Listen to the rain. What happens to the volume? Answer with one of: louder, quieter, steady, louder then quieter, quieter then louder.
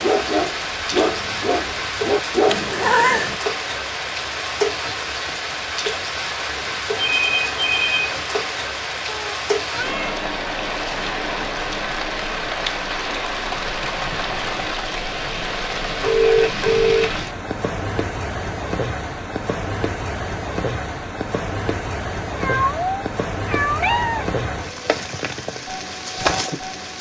steady.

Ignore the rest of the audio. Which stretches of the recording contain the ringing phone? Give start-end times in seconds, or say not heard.
7.0-8.2, 16.0-17.2.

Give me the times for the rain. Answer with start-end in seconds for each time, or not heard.
0.0-26.9.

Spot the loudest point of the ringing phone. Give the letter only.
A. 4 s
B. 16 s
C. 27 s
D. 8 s
B.